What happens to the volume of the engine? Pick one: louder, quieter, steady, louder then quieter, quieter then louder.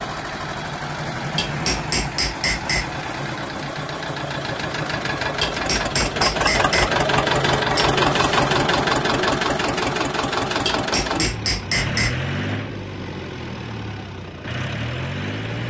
louder then quieter.